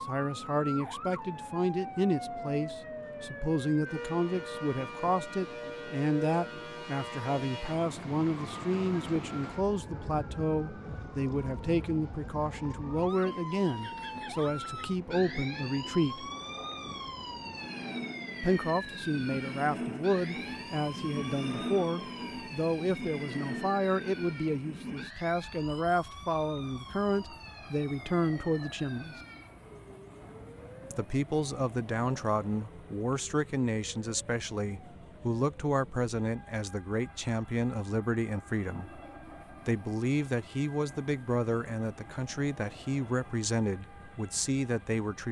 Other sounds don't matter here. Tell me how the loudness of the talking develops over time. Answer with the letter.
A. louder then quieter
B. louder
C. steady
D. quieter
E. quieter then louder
C.